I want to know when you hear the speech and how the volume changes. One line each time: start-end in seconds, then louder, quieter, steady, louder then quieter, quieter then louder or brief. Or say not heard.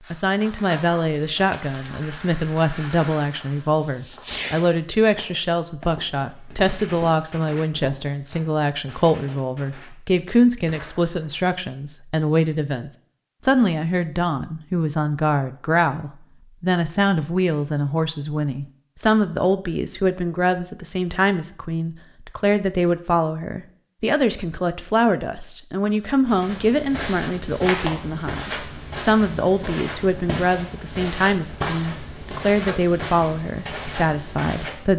0.1-34.9 steady.